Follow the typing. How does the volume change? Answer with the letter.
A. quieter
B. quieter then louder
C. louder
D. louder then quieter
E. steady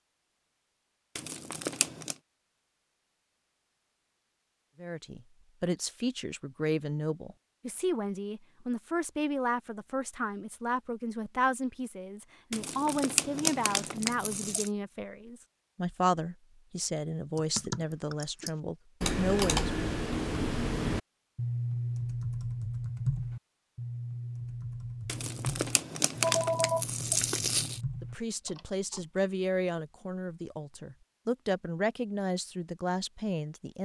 A.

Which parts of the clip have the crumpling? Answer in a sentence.
You can hear the crumpling from 1.1 to 2.1 s, from 12.5 to 14.7 s and from 25.1 to 27.8 s.